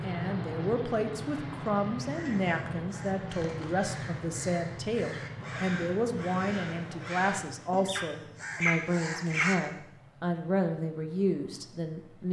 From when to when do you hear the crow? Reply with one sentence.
The crow can be heard from 2.0 to 9.6 s.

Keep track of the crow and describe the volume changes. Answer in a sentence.
The volume of the crow goes up.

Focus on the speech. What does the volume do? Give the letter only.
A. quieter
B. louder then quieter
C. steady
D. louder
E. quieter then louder
C.